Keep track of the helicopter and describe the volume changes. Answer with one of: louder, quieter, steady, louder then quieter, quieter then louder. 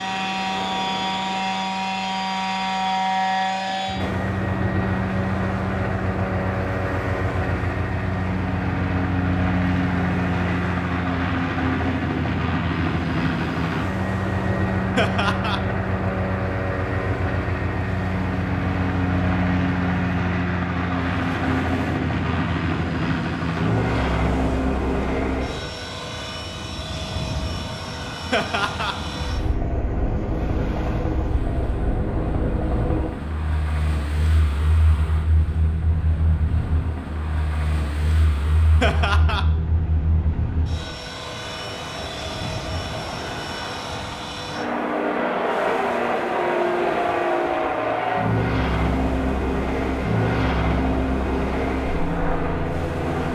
quieter then louder.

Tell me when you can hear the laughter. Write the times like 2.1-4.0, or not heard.
14.9-15.6, 28.3-28.9, 38.8-39.5.